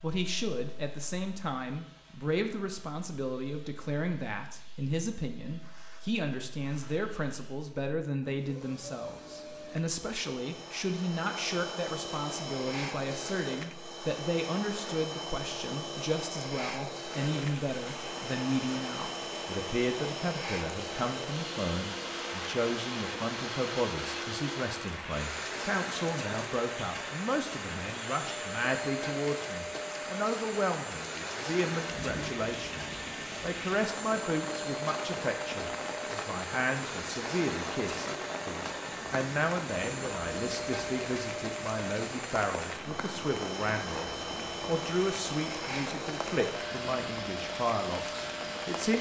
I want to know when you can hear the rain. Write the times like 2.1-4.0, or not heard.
17.2-48.9.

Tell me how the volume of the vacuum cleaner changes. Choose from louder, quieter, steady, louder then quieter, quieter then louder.
louder.